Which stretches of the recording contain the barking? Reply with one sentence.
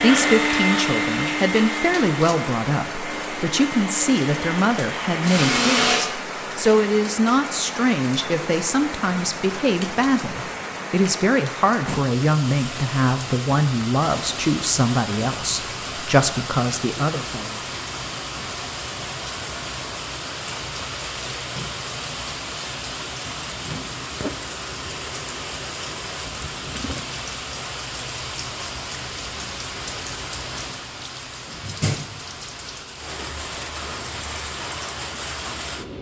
The barking can't be heard in this clip.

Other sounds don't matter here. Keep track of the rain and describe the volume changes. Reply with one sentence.
The volume of the rain stays about the same.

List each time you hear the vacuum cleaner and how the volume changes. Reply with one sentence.
The vacuum cleaner can be heard from 0.0 to 6.0 s, getting quieter then louder.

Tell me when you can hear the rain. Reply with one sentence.
You can hear the rain from 0.0 to 35.9 s.